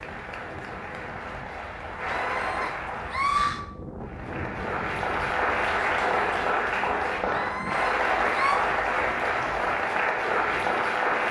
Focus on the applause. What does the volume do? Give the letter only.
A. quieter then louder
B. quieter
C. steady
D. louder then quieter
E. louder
E.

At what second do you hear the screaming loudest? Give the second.
3 s.